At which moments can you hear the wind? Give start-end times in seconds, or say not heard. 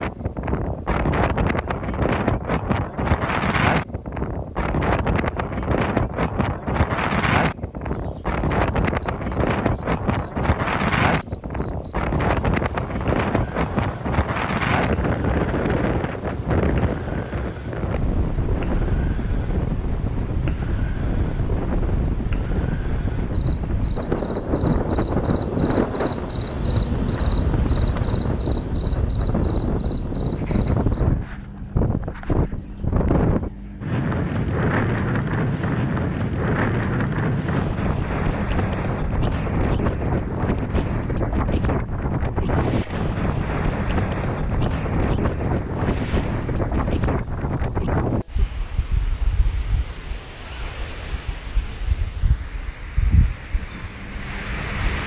0.0-55.0.